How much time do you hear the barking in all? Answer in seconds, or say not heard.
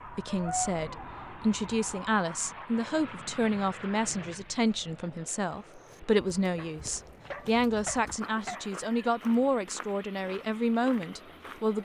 3 s.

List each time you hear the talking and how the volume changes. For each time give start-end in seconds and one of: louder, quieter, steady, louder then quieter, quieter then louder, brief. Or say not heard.
0.1-11.8 steady.